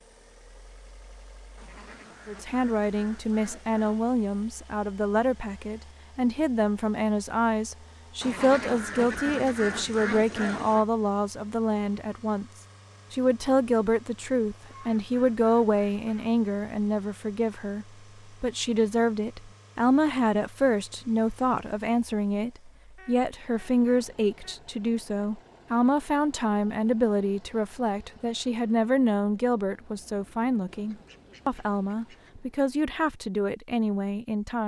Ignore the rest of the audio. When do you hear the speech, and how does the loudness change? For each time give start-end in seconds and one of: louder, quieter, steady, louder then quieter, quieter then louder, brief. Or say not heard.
2.2-12.4 steady
13.1-34.6 steady.